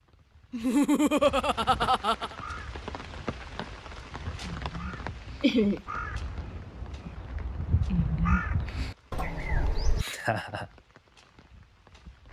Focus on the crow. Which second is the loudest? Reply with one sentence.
The volume of the crow peaks at 8 seconds.